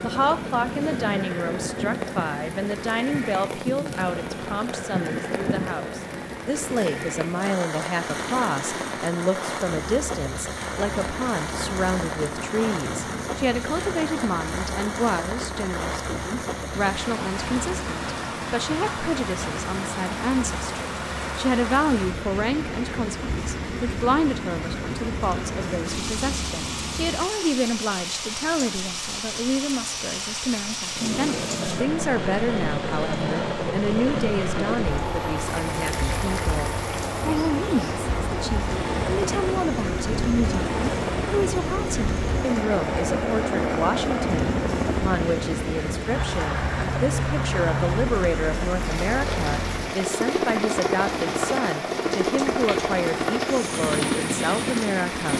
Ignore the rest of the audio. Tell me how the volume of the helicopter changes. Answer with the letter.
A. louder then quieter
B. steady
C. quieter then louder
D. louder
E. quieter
D.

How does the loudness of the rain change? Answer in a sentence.
The loudness of the rain stays about the same.